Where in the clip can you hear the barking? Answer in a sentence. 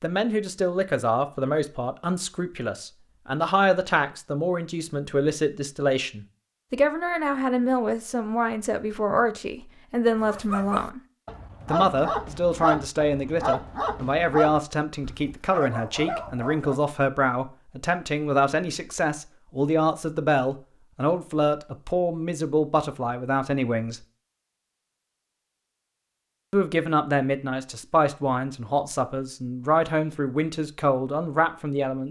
You can hear the barking from 10.2 to 16.8 s.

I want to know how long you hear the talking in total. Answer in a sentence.
You can hear the talking for 29 seconds altogether.